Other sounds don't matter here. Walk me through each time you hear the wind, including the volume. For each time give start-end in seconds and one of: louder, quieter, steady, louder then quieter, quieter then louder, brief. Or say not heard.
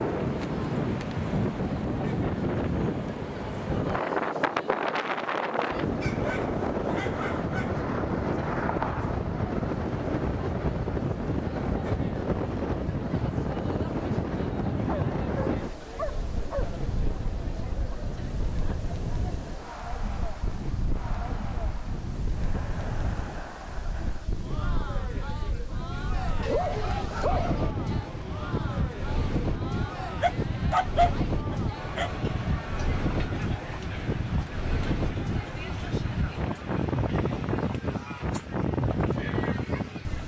0.0-40.2 quieter then louder.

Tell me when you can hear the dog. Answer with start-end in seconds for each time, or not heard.
6.0-7.8, 14.8-17.2, 26.4-27.8, 30.2-32.1.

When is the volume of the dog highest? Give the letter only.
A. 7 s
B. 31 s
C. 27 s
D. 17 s
B.